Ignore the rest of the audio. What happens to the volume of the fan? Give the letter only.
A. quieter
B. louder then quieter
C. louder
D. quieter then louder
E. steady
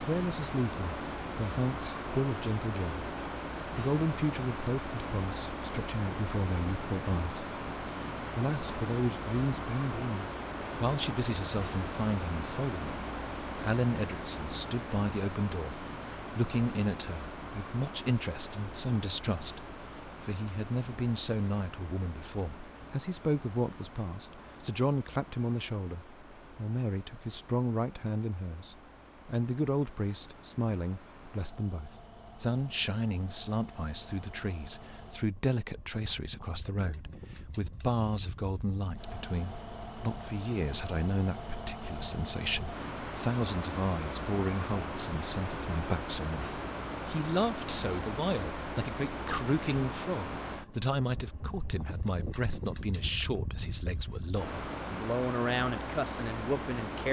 D.